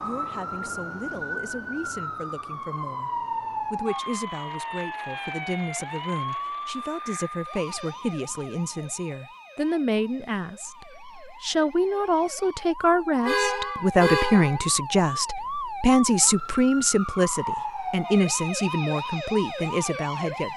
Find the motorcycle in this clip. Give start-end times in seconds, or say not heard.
not heard.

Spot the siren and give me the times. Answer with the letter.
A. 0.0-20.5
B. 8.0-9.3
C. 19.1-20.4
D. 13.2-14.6
A.